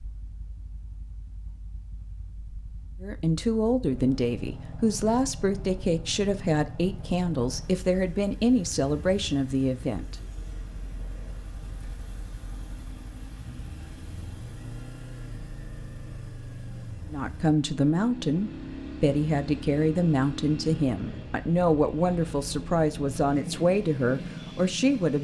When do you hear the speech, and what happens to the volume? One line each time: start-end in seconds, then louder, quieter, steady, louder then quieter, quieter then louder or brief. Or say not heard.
3.0-10.2 steady
17.1-25.2 steady.